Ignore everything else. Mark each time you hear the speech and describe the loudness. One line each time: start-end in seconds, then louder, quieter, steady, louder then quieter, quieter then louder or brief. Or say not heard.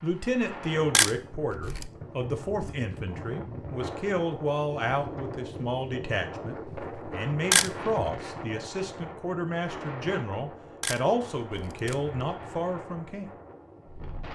0.0-13.3 steady.